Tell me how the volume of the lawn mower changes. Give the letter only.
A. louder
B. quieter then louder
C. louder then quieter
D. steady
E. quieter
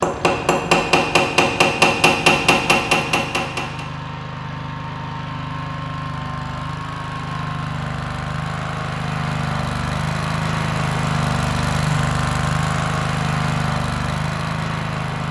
A.